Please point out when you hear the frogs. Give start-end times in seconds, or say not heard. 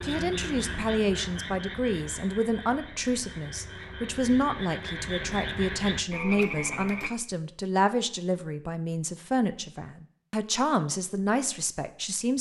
0.0-7.1.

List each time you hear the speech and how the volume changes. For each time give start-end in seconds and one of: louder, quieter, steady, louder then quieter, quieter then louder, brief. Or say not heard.
0.0-12.3 steady.